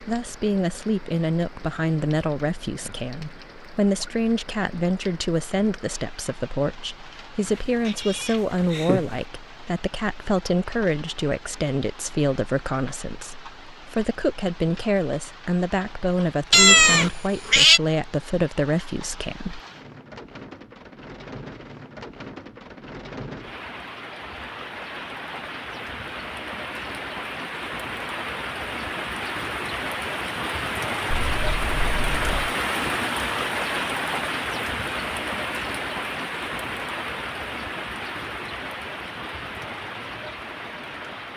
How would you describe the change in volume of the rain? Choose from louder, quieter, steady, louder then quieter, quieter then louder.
louder.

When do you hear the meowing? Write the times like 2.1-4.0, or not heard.
7.5-9.2, 16.5-17.8, 31.2-32.5.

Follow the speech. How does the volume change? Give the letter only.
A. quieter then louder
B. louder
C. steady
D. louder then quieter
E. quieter
C.